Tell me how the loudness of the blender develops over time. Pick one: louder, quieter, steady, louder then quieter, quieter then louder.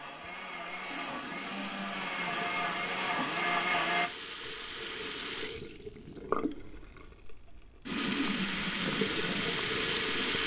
louder.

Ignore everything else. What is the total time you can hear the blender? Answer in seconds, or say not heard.
4 s.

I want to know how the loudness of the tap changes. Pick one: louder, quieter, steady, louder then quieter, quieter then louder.
louder.